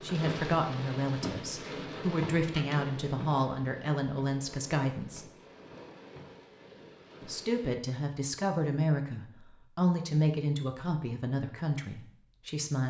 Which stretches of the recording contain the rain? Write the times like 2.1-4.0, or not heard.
0.0-7.8.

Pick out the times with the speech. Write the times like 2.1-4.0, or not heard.
0.0-5.2, 7.2-12.8.